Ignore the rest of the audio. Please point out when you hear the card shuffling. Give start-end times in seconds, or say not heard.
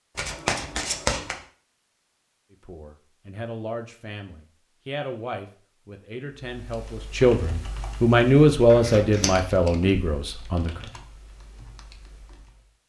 0.1-1.4, 8.7-9.4.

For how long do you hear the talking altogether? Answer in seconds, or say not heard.
8 s.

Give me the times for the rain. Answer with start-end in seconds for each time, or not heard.
not heard.